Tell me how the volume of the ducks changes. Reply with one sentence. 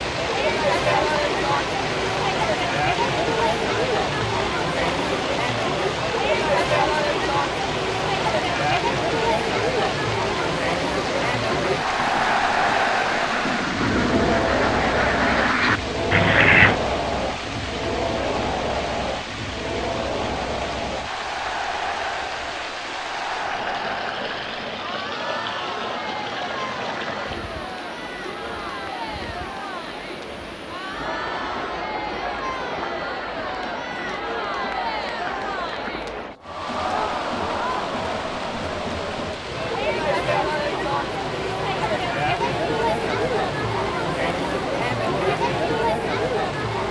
The volume of the ducks goes up.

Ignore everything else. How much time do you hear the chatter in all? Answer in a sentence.
The chatter can be heard for 47 seconds in total.